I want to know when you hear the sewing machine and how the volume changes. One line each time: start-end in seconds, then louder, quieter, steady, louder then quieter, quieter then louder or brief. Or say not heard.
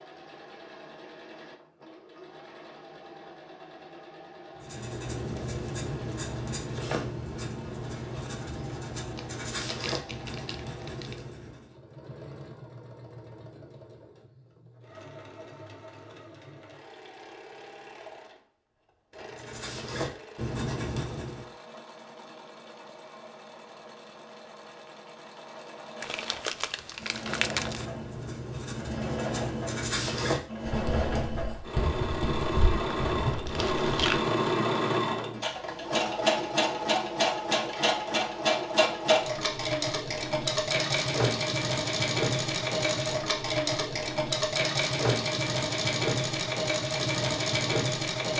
0.0-48.3 louder.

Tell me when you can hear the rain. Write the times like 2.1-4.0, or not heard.
not heard.